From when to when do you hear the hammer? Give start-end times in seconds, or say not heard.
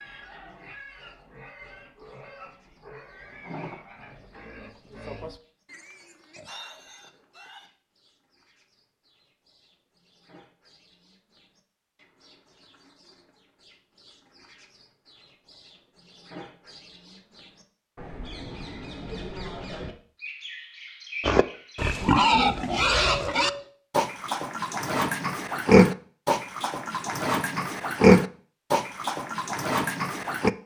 not heard.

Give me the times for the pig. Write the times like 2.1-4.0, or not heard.
0.0-7.7, 21.2-30.5.